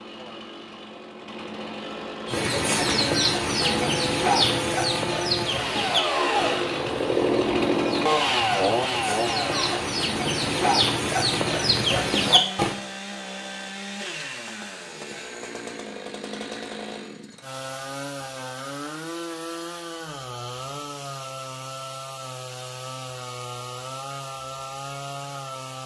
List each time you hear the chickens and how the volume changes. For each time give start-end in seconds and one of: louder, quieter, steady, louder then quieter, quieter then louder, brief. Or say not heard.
2.2-12.8 quieter then louder.